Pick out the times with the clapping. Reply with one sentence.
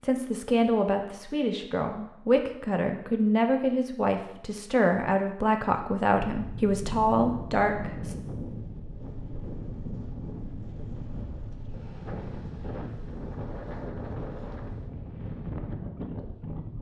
You can't hear the clapping here.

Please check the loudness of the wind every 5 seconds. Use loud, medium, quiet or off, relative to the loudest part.
off, loud, loud, loud.